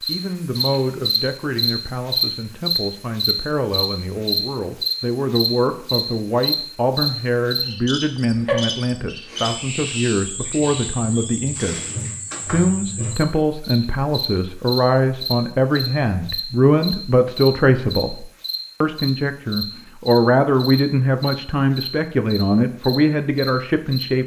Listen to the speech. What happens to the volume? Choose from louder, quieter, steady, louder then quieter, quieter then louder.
louder.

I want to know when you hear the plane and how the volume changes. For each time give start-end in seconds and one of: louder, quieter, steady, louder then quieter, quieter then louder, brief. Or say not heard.
not heard.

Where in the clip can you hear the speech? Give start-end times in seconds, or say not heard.
0.1-11.8, 12.5-24.2.